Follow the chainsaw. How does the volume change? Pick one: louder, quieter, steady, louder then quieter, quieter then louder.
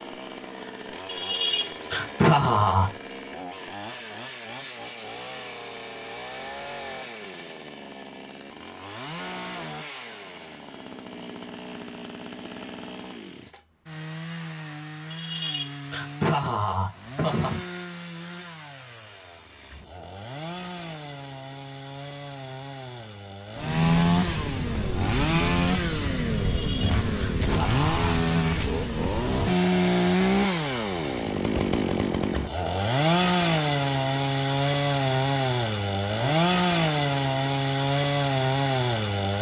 louder.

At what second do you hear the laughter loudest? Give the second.
2 s.